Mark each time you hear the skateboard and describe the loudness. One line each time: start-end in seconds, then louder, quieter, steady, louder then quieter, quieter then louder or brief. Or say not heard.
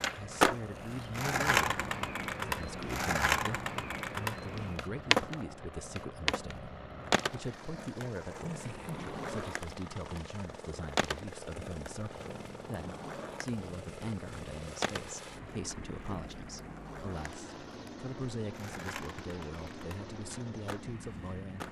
0.0-21.6 quieter.